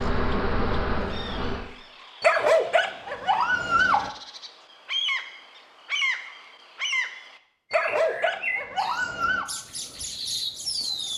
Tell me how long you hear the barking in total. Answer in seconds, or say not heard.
4 s.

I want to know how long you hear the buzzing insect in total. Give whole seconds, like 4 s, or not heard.
2 s.